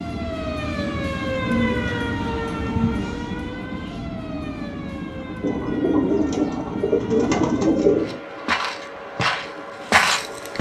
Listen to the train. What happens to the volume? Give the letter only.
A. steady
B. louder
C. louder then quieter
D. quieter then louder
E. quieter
E.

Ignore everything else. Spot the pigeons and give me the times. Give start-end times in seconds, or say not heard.
1.4-3.1, 5.4-8.2.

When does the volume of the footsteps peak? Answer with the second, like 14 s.
10 s.